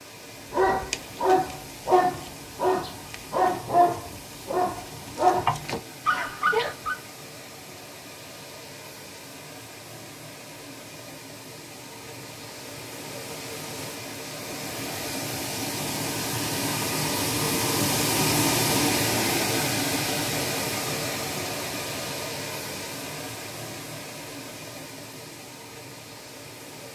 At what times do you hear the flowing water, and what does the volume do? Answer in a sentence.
You can hear the flowing water from 0.0 to 26.9 s, getting louder then quieter.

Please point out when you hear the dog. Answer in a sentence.
You can hear the dog from 0.5 to 7.0 s.